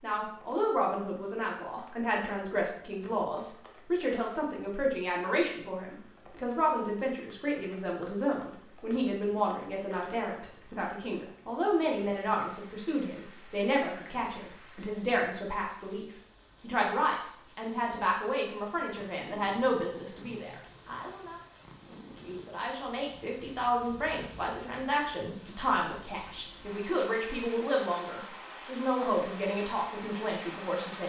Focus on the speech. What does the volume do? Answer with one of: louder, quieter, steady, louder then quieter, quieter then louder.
steady.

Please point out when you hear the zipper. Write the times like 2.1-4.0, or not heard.
not heard.